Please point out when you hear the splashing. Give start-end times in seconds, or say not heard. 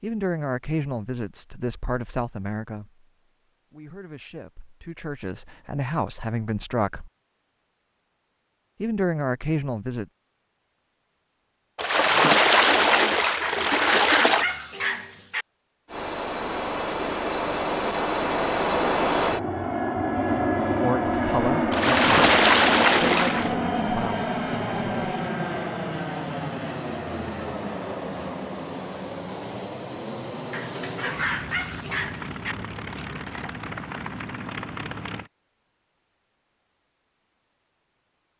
11.8-14.4, 21.7-23.6.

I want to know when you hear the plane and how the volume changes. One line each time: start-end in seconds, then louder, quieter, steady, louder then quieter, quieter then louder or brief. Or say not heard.
15.8-35.3 quieter.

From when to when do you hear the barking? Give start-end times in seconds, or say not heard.
13.4-15.4, 30.5-32.5.